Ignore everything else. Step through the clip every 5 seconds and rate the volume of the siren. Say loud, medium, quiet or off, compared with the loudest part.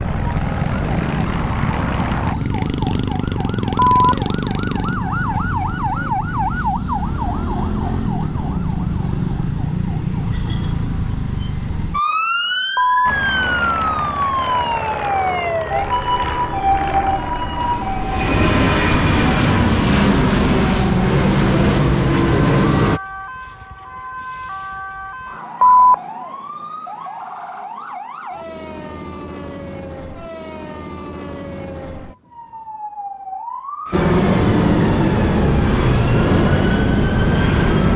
loud, loud, loud, loud, medium, medium, medium, medium.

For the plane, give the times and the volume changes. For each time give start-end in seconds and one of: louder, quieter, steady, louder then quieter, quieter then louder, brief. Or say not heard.
0.0-2.4 brief
13.1-23.0 louder
33.9-37.9 steady.